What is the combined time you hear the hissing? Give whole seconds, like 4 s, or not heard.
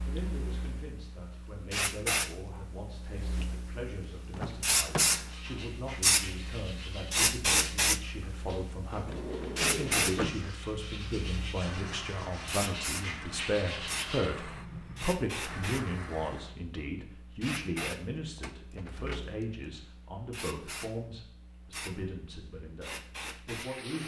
24 s.